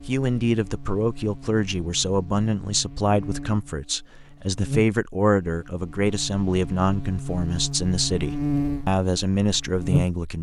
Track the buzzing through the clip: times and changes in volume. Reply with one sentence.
The buzzing can be heard from 0.0 to 10.2 s, getting louder.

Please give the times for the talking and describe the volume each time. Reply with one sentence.
You can hear the talking from 0.0 to 10.3 s, at a steady volume.